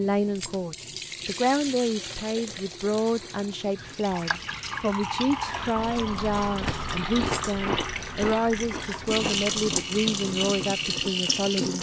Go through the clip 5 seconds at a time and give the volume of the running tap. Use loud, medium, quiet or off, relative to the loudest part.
medium, loud, loud.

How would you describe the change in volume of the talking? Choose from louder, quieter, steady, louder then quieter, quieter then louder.
steady.